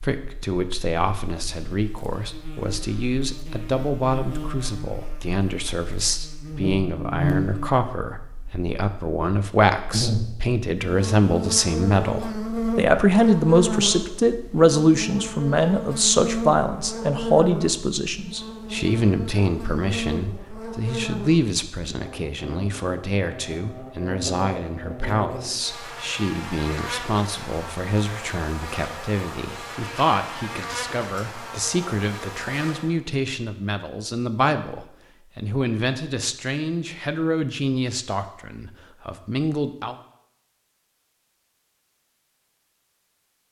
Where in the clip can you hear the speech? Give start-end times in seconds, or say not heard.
0.0-40.0.